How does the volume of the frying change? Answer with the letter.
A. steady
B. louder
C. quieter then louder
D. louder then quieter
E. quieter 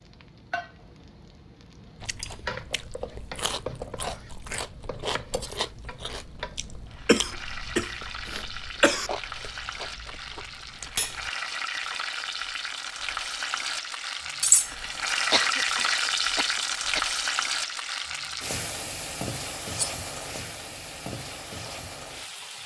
D.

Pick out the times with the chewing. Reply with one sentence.
The chewing can be heard from 1.9 to 11.3 s.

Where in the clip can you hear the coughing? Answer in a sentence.
The coughing can be heard from 7.0 to 9.1 s and from 15.3 to 17.1 s.